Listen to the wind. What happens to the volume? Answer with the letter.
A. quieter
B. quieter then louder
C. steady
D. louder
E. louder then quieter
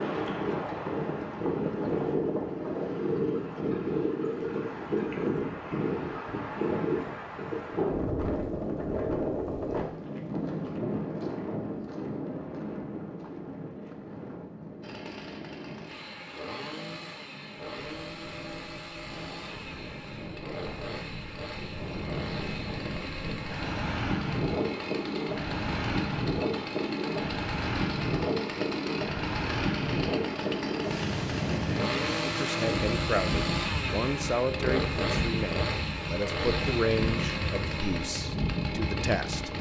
B.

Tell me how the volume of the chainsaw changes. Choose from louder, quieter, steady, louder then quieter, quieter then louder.
louder.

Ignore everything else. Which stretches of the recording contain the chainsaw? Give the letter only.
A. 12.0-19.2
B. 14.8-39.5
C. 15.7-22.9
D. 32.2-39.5
B.